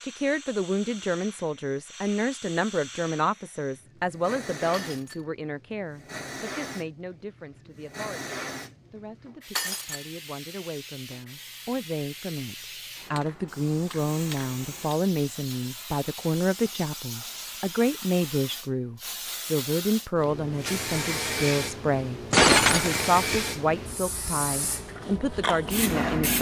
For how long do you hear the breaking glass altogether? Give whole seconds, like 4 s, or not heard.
2 s.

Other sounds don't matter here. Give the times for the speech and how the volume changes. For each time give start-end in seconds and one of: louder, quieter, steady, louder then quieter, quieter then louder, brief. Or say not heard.
0.0-26.3 quieter then louder.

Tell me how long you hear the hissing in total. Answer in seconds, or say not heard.
26 s.